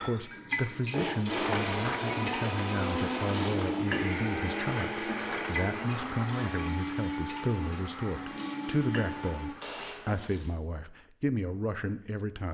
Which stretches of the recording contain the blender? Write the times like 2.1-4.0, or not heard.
0.0-9.9.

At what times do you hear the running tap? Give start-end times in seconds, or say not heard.
0.0-10.6.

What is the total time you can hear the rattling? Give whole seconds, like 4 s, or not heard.
4 s.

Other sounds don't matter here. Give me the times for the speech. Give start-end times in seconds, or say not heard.
0.0-12.4.